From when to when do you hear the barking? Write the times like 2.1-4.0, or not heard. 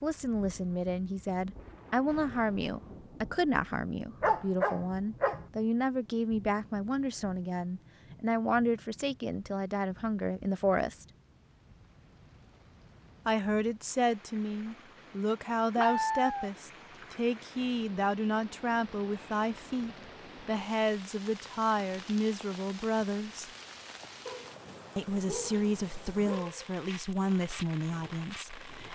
4.2-5.4, 15.8-16.5, 24.2-26.8.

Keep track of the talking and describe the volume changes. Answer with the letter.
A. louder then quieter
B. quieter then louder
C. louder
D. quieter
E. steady
E.